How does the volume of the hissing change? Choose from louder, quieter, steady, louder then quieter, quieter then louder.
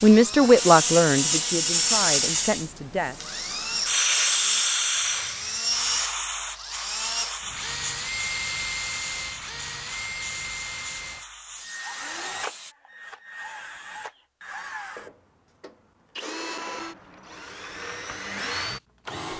quieter.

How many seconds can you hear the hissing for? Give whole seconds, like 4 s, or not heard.
13 s.